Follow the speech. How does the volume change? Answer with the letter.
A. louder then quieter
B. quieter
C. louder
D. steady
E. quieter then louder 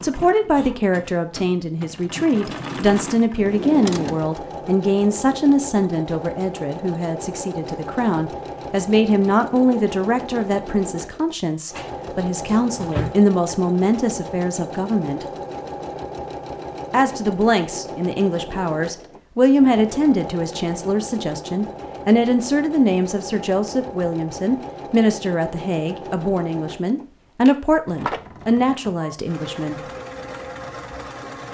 D.